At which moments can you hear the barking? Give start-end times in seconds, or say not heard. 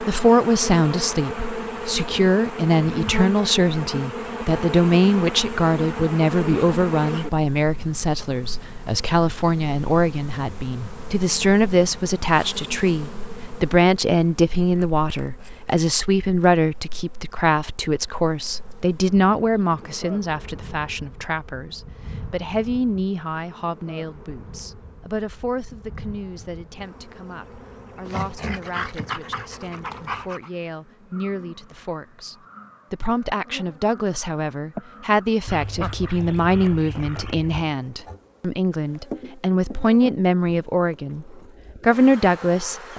28.1-30.5.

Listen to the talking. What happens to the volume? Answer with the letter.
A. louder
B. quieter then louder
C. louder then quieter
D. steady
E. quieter
B.